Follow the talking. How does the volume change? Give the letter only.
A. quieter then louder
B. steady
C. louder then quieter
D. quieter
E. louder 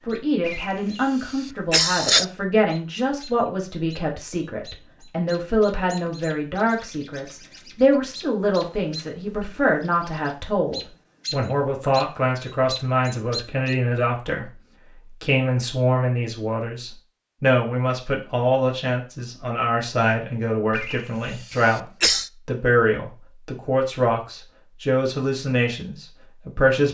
B.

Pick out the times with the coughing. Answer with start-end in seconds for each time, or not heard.
0.4-2.2, 20.7-22.3.